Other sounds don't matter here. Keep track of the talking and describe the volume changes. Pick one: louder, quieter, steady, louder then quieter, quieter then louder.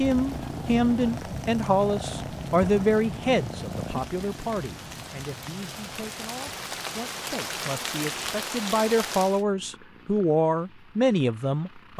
quieter then louder.